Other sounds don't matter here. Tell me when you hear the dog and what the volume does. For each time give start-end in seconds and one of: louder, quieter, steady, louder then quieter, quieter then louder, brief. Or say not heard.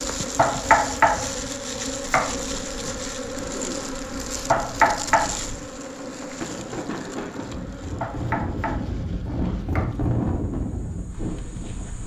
not heard.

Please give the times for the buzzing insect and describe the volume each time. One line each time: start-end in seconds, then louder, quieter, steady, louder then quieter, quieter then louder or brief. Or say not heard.
0.0-12.0 quieter.